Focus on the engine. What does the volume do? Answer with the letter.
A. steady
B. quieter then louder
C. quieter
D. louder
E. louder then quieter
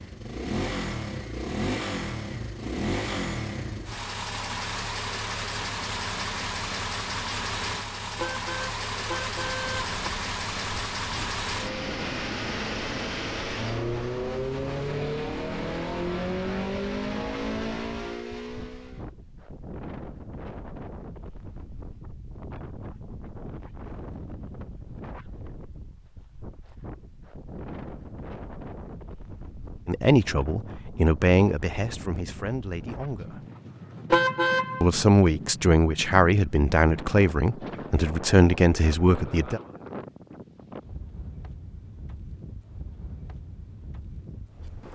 A.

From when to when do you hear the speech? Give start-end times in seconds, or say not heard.
29.9-33.5, 34.8-39.6.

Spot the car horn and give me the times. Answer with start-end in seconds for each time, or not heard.
8.2-10.0, 34.1-34.9.